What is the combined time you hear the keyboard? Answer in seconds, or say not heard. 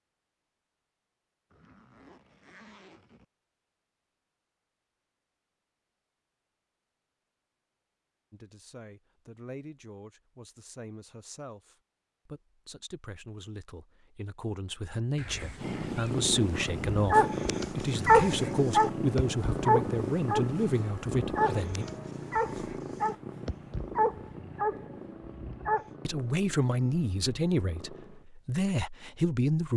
not heard.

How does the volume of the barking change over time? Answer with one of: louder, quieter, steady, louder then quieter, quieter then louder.
quieter.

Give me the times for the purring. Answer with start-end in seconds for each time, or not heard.
15.6-28.2.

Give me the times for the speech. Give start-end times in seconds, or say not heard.
8.3-21.9, 26.1-29.7.